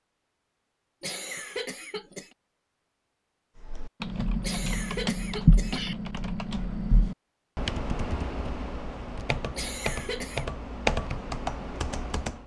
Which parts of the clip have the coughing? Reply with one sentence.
You can hear the coughing from 1.0 to 2.4 s, from 4.4 to 6.0 s and from 9.6 to 10.5 s.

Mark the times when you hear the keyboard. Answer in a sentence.
You can hear the keyboard from 3.6 to 12.4 s.